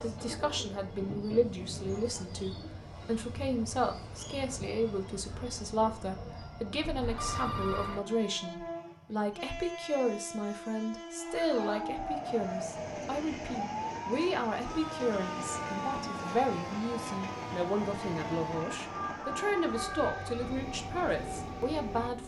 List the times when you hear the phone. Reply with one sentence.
The phone can be heard from 7.0 to 8.0 s.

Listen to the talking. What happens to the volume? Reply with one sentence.
The volume of the talking stays about the same.